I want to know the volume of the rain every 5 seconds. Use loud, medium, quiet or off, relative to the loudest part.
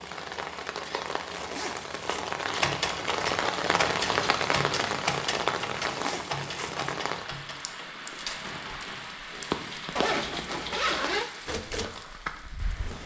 loud, loud, medium.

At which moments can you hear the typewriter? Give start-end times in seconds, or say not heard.
2.6-11.9.